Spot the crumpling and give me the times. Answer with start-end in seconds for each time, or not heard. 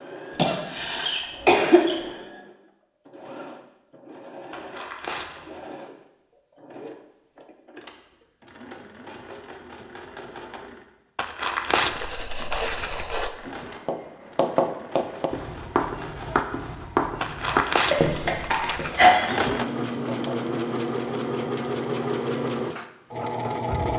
4.5-5.5, 11.2-13.2, 17.2-19.1.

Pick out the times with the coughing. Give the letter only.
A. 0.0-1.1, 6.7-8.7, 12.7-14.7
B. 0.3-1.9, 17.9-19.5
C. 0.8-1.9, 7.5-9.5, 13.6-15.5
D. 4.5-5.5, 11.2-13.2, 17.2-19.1
B.